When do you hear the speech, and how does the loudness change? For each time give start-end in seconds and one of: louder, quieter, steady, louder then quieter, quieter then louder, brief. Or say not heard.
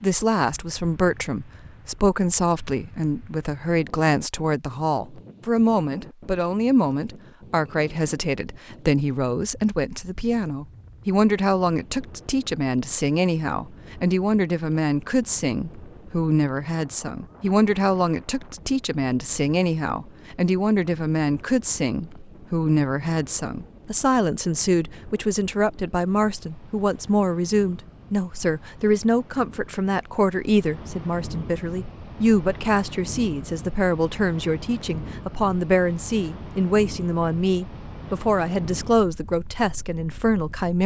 0.0-40.8 steady.